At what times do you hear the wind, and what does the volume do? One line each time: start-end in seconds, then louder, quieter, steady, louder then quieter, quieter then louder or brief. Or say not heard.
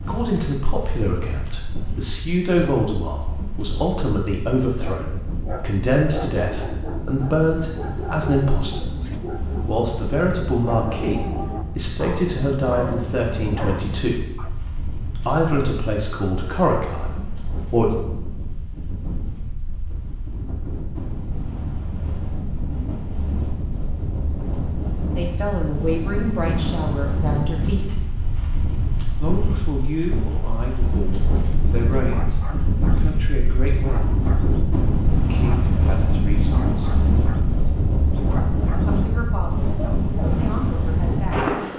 0.0-41.7 louder.